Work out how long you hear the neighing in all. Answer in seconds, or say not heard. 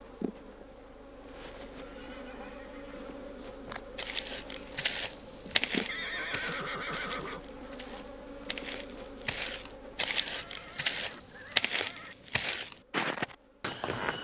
5 s.